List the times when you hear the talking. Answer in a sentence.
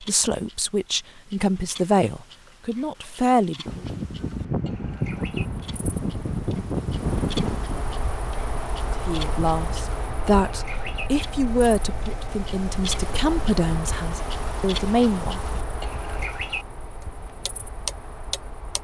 The talking can be heard from 0.0 to 3.9 s and from 9.1 to 15.4 s.